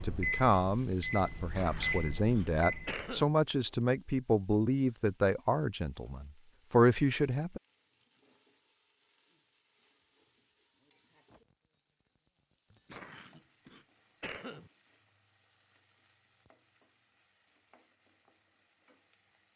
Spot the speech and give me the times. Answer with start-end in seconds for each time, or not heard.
0.0-7.6.